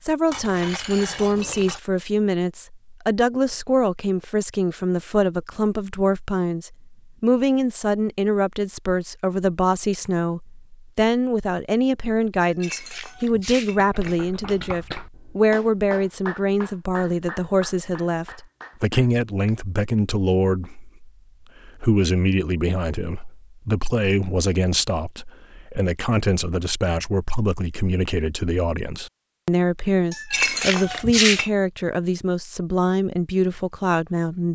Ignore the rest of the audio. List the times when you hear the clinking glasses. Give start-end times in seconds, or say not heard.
0.3-1.8, 12.4-14.2, 30.1-31.5.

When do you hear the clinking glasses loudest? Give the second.
31 s.